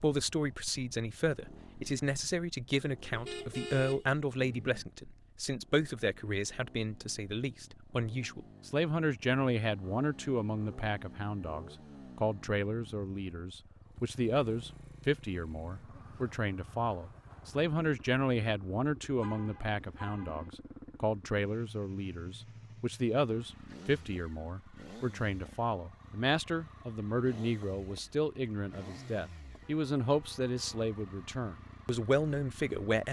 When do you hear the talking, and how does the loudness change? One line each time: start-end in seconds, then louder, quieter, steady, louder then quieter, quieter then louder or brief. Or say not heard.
0.0-33.0 steady.